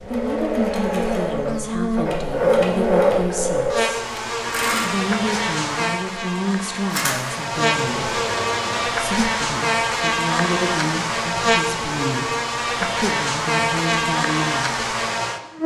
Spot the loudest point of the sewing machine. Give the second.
3 s.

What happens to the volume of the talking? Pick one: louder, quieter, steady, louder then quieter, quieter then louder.
steady.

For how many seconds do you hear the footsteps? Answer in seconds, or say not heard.
not heard.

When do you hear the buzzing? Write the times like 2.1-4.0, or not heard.
0.0-15.6.